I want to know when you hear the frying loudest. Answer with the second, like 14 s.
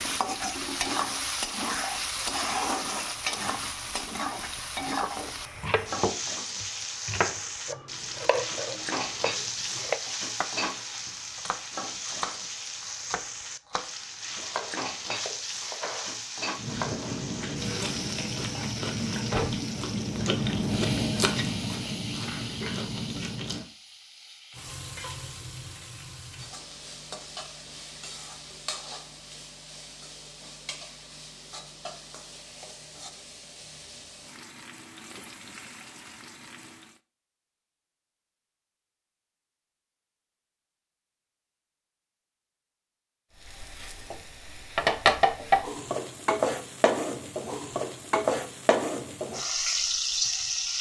45 s.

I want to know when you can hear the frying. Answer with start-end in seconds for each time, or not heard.
0.0-37.0, 43.4-50.7.